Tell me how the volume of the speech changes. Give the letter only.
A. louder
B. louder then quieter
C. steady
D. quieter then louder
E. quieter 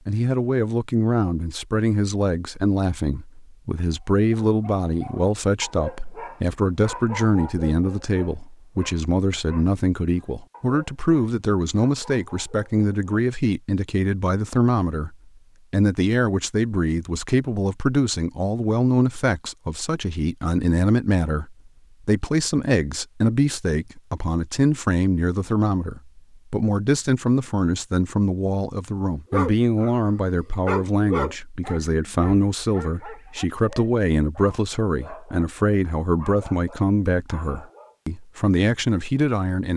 C.